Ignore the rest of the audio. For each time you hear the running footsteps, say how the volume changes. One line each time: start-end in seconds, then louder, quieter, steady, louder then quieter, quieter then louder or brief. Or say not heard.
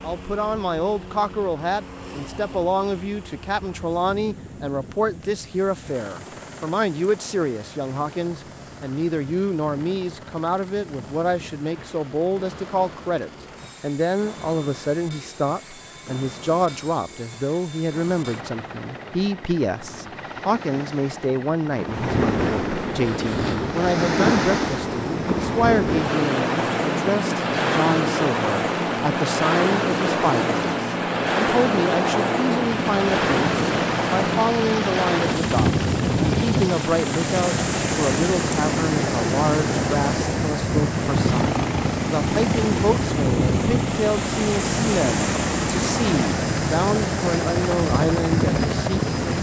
not heard.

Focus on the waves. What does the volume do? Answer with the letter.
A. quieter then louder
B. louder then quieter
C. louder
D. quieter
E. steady
C.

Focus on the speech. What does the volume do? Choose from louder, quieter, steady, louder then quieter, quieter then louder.
steady.